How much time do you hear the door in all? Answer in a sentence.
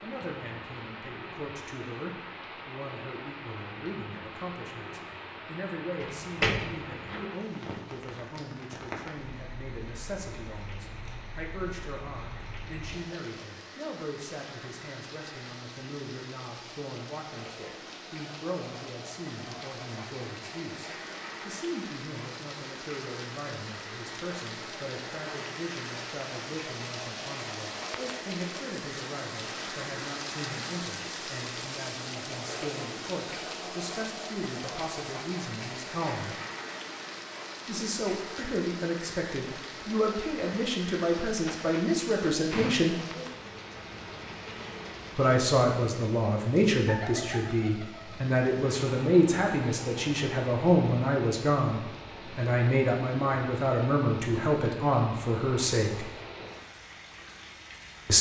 You can hear the door for 3 seconds altogether.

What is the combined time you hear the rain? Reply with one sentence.
The rain can be heard for 58 seconds in total.